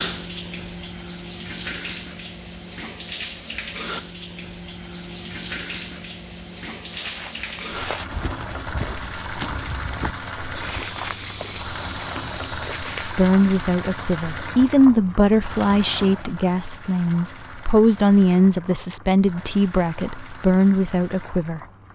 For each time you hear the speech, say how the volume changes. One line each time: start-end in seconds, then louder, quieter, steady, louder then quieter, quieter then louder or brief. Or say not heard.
13.1-21.6 steady.